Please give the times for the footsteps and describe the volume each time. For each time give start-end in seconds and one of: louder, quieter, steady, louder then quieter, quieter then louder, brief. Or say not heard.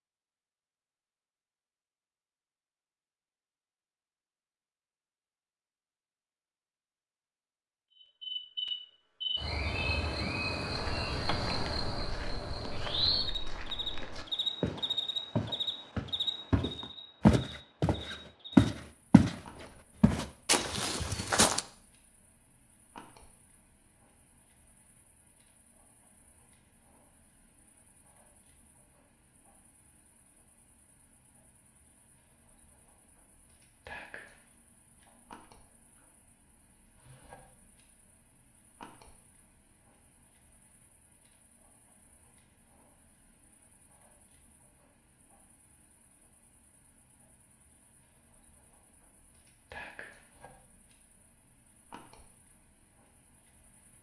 10.7-19.4 louder
20.0-21.6 brief.